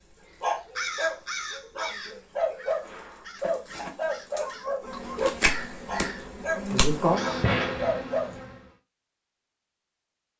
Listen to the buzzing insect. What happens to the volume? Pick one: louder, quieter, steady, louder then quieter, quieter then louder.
louder.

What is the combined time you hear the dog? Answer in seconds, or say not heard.
8 s.